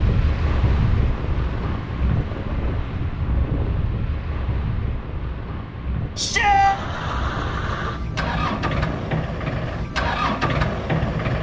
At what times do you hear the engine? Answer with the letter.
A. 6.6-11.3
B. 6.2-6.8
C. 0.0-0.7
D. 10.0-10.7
A.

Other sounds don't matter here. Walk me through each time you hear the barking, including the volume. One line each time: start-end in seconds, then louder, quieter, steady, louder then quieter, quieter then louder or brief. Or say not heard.
not heard.